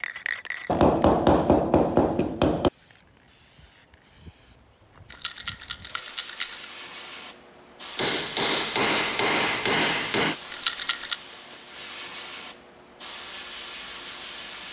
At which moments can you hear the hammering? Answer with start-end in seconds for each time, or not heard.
0.7-2.7, 8.0-10.3.